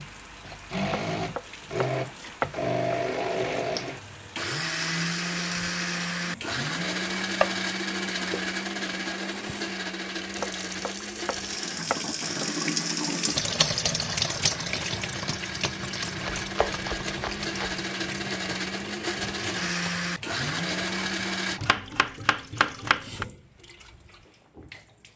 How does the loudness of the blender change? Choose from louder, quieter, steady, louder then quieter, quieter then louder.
quieter then louder.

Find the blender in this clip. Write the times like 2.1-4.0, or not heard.
0.0-21.6.